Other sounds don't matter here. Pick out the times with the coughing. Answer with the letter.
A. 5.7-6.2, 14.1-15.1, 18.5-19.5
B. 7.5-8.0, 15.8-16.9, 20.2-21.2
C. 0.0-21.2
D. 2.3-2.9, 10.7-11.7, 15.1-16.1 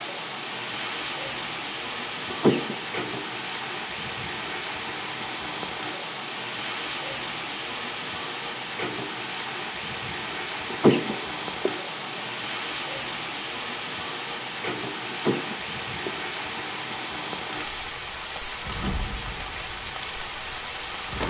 D.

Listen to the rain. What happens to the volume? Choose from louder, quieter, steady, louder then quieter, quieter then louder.
steady.